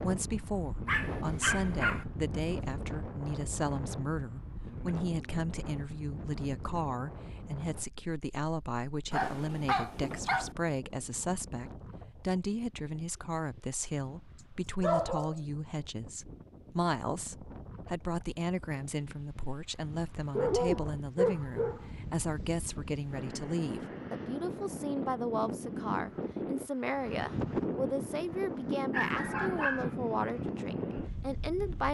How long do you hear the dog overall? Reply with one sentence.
The dog can be heard for 6 seconds in total.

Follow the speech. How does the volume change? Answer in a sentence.
The loudness of the speech stays about the same.